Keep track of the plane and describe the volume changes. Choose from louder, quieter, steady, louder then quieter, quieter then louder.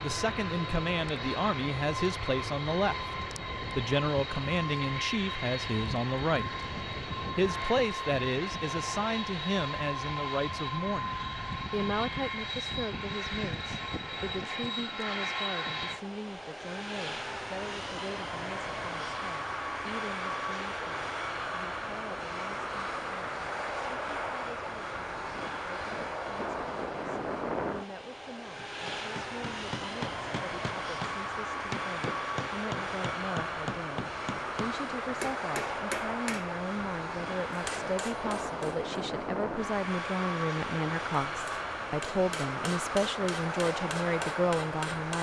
steady.